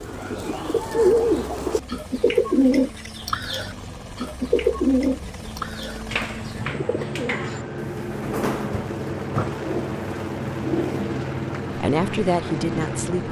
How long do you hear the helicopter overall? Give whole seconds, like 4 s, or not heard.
13 s.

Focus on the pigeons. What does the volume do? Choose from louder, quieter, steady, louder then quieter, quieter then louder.
quieter.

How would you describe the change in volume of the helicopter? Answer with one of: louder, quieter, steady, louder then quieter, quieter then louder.
louder.